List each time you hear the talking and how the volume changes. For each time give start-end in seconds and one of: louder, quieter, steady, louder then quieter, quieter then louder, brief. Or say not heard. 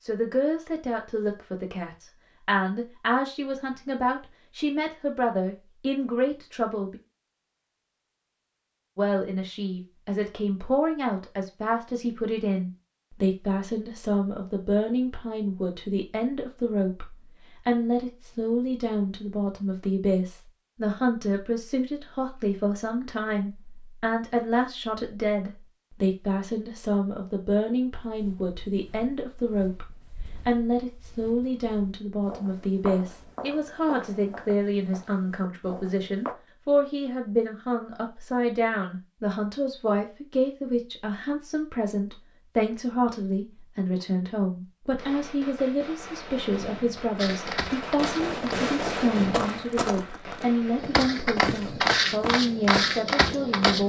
0.0-7.0 steady
8.9-53.8 steady.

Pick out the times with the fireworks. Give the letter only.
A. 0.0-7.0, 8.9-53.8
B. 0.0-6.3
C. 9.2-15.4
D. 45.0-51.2
D.